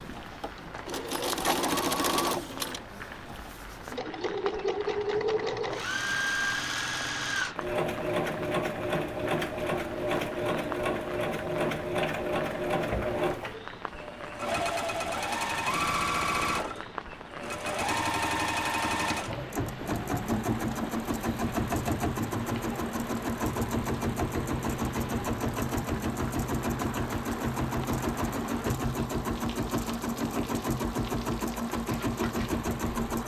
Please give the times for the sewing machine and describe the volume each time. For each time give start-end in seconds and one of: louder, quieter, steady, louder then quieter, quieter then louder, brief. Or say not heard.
0.0-33.2 steady.